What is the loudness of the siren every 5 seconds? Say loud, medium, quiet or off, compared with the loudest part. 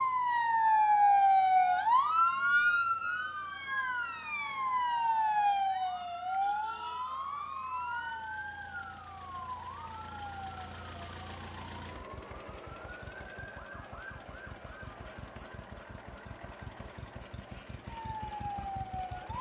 loud, medium, quiet, quiet.